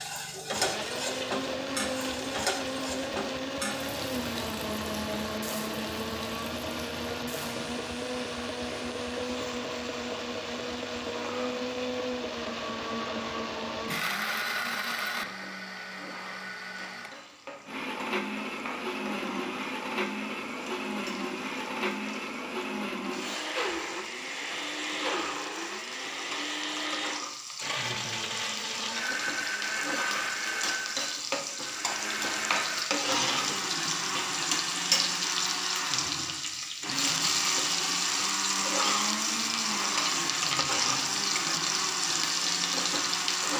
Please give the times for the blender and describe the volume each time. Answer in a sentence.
The blender can be heard from 0.0 to 43.5 s, at a steady volume.